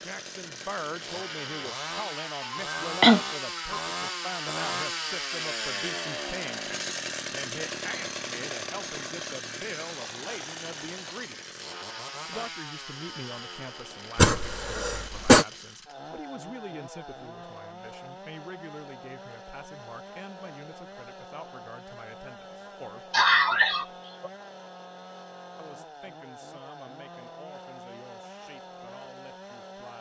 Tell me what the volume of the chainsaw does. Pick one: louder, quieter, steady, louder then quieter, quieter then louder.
quieter.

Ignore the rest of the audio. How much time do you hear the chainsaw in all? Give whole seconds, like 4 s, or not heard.
30 s.